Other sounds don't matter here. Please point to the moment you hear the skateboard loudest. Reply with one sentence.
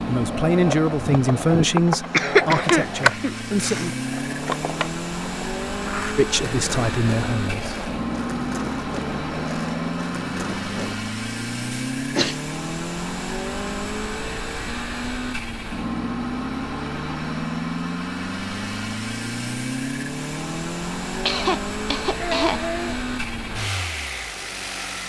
The loudest moment of the skateboard is at 3 seconds.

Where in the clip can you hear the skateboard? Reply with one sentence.
The skateboard can be heard from 0.1 to 10.9 s.